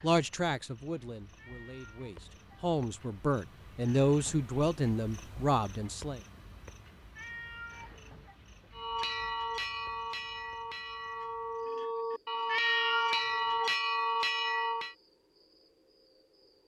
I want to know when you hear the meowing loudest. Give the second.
13 s.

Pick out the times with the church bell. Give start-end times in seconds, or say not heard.
8.7-14.9.